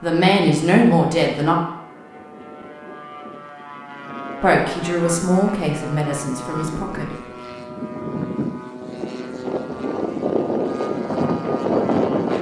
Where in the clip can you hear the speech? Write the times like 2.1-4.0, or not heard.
0.0-1.6, 4.4-7.1.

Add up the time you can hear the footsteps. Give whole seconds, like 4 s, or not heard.
not heard.